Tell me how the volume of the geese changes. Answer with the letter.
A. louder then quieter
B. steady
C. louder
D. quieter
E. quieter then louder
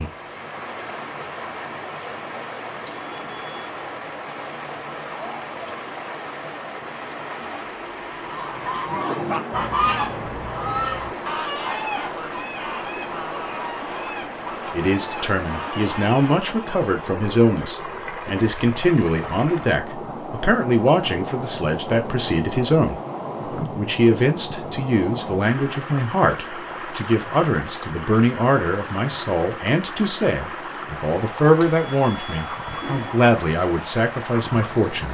D.